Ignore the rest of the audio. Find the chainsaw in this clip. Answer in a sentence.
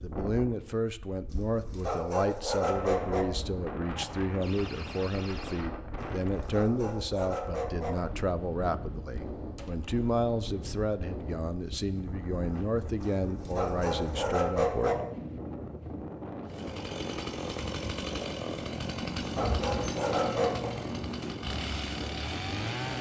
You can hear the chainsaw from 16.4 to 22.9 s.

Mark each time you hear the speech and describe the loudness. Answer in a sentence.
You can hear the speech from 0.0 to 14.9 s, at a steady volume.